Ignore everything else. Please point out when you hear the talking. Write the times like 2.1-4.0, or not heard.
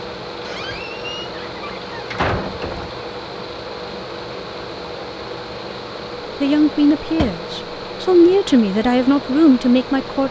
6.4-10.2.